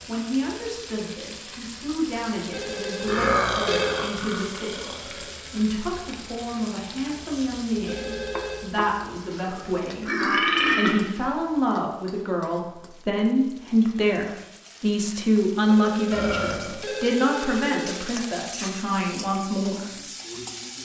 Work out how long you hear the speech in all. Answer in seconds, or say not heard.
20 s.